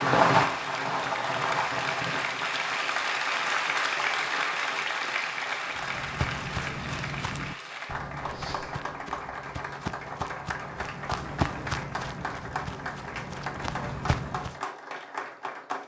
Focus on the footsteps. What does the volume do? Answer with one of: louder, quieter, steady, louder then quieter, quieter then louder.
quieter then louder.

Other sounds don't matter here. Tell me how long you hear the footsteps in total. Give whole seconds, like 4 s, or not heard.
9 s.